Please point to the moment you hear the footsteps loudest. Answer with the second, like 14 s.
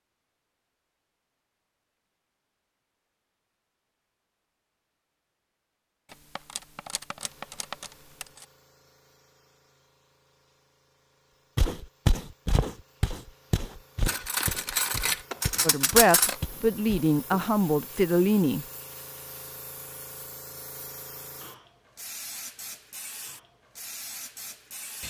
12 s.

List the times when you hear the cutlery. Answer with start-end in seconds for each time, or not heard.
6.1-8.4, 14.1-16.4.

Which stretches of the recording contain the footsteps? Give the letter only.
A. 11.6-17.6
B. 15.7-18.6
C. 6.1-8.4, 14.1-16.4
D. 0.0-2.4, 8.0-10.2
A.